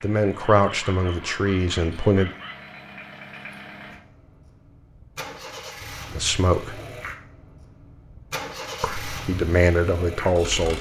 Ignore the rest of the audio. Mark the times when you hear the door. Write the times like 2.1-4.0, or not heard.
not heard.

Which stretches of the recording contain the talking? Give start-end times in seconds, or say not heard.
0.0-2.3, 6.1-6.8, 8.8-10.7.